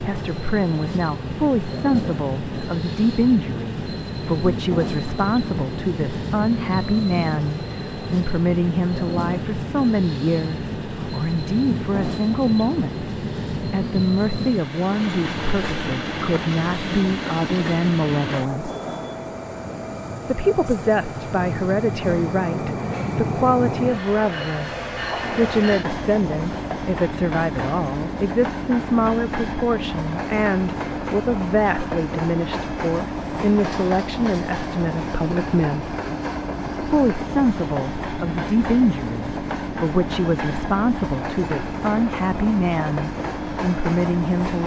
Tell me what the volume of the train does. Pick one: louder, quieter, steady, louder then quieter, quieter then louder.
steady.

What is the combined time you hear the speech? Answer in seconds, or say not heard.
42 s.